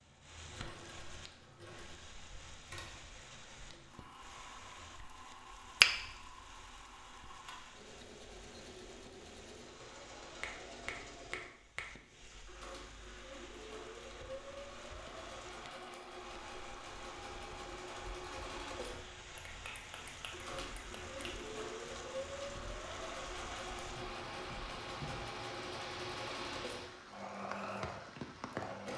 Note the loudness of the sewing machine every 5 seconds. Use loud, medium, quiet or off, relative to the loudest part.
medium, medium, medium, loud, loud, loud.